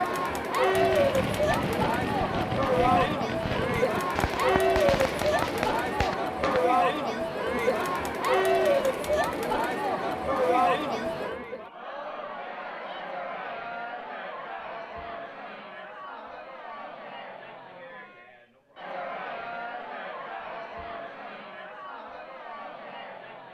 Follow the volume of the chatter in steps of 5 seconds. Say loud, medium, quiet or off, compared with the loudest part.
loud, loud, medium, quiet, quiet.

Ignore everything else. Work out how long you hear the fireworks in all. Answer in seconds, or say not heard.
6 s.